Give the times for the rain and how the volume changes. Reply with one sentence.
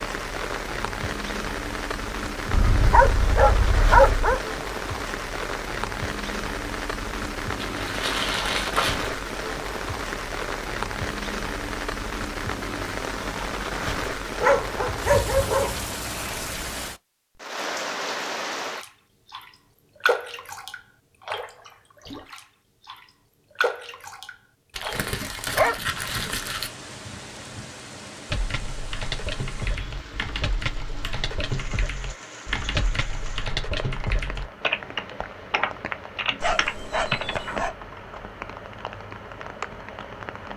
The rain can be heard from 0.0 to 40.5 s, getting quieter.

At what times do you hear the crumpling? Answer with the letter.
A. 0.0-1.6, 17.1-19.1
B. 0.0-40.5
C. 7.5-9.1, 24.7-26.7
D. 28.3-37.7
C.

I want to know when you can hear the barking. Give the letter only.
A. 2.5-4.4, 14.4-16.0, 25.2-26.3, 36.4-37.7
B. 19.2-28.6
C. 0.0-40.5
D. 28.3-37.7
A.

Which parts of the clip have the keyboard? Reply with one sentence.
You can hear the keyboard from 28.3 to 37.7 s.